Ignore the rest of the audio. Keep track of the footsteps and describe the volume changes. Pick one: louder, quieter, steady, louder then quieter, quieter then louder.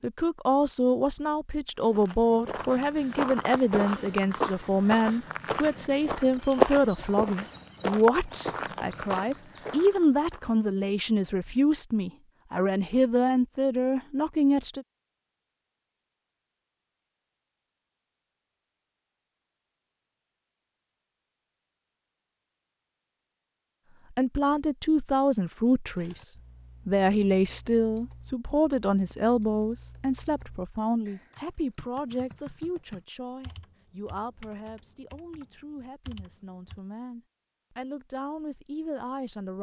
louder then quieter.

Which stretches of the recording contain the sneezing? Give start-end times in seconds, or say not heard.
not heard.